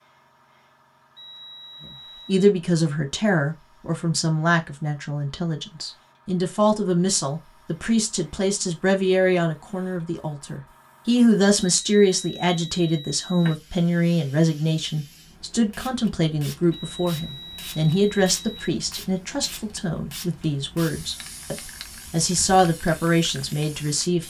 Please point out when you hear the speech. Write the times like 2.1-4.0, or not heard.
2.2-24.2.